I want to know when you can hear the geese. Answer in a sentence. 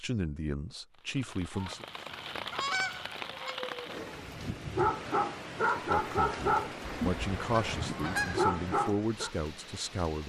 The geese can be heard from 1.5 to 3.5 s and from 6.8 to 8.4 s.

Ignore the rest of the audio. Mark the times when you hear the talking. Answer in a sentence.
The talking can be heard from 0.0 to 1.9 s and from 5.8 to 10.2 s.